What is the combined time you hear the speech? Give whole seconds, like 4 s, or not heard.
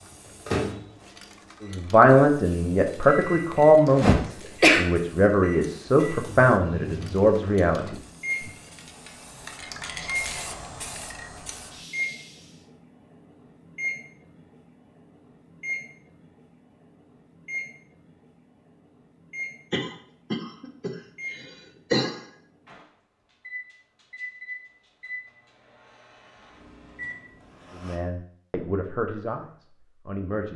9 s.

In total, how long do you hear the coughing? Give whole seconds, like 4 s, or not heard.
4 s.